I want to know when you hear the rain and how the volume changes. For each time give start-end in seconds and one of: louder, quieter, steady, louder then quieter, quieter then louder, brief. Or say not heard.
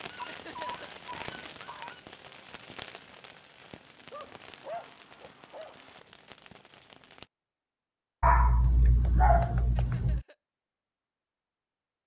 0.0-7.3 quieter.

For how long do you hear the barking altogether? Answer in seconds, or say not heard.
6 s.